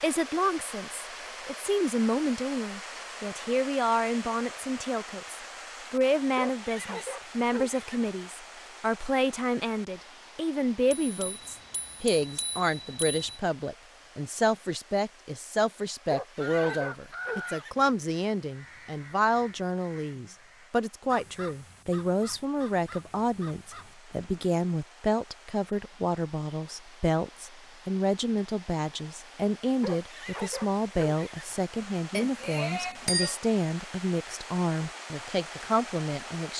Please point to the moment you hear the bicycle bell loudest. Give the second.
33 s.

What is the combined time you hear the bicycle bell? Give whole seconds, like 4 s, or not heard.
4 s.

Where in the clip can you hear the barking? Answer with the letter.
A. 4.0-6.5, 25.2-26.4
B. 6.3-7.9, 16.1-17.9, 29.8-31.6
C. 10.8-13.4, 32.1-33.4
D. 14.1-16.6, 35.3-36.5
B.